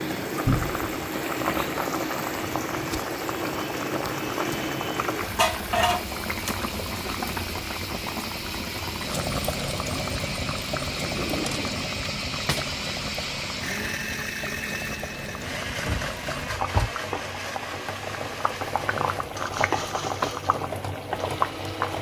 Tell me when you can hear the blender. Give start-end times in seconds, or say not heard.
0.0-21.9.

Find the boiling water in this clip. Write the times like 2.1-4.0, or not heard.
0.0-21.9.